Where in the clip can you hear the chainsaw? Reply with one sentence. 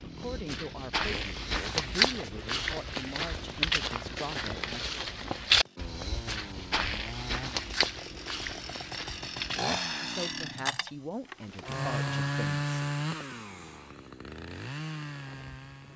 You can hear the chainsaw from 0.0 to 15.9 s.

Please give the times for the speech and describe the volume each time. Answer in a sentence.
You can hear the speech from 0.0 to 4.8 s, at a steady volume; and briefly from 10.0 to 12.7 s.